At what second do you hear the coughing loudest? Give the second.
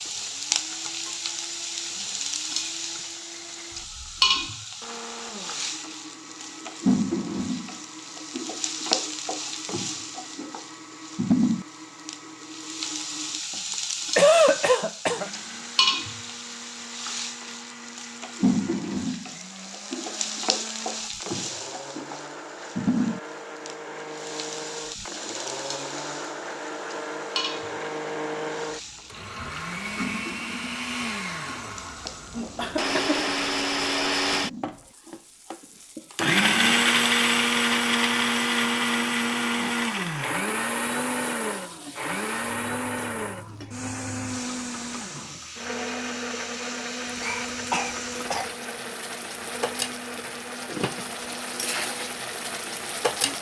14 s.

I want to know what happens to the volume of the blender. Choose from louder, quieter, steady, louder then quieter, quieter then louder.
louder then quieter.